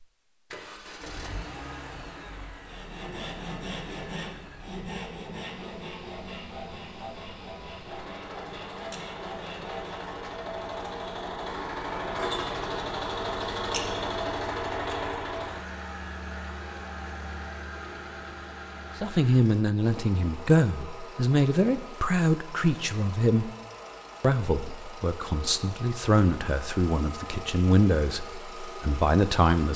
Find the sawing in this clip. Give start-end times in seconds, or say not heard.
2.6-10.2.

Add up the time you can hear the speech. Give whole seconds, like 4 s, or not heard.
10 s.